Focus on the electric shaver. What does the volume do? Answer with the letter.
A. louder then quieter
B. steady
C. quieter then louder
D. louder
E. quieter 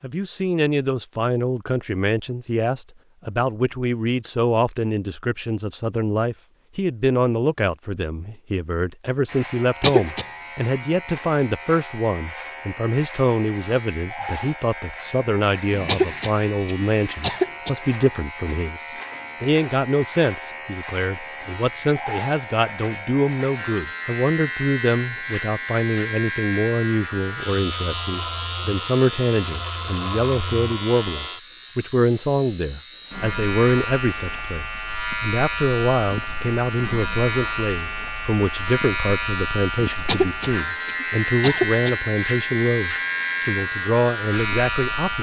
D.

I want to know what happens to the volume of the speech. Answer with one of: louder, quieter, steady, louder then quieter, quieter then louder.
steady.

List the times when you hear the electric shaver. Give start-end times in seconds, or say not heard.
9.2-45.1.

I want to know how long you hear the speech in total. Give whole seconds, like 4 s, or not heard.
45 s.